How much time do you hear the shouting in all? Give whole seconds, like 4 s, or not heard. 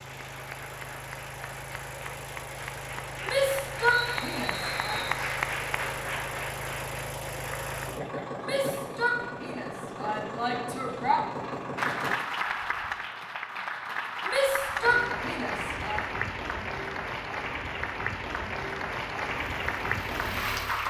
6 s.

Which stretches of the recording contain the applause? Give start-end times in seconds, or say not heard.
0.0-7.8, 11.8-20.8.